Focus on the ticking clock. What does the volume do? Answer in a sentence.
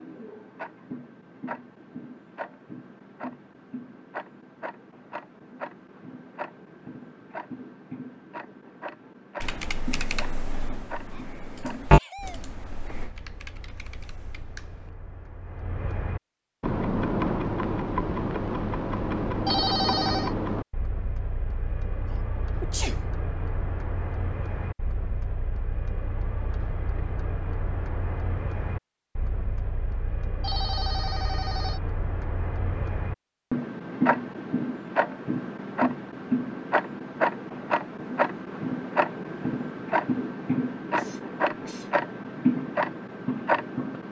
The volume of the ticking clock goes up.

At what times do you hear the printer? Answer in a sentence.
You can't hear the printer here.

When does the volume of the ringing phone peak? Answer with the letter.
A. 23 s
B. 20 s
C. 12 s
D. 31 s
B.